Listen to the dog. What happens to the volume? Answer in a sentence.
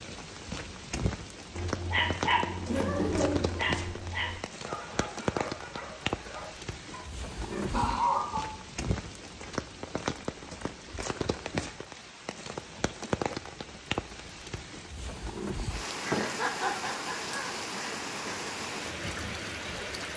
The loudness of the dog goes down.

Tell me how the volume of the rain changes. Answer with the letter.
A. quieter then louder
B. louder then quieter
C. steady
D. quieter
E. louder
C.